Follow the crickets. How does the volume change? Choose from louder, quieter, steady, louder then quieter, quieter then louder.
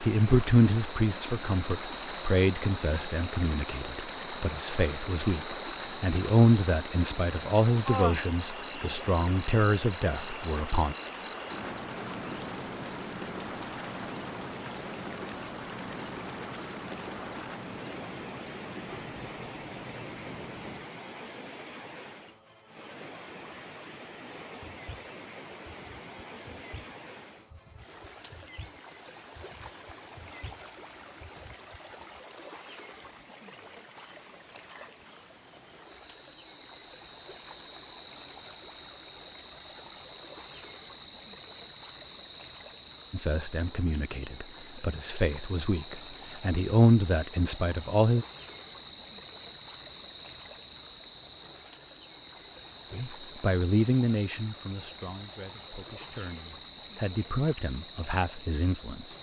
quieter then louder.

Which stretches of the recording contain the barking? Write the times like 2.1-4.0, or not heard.
not heard.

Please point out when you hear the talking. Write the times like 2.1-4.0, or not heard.
0.0-10.9, 43.1-48.2, 52.9-59.0.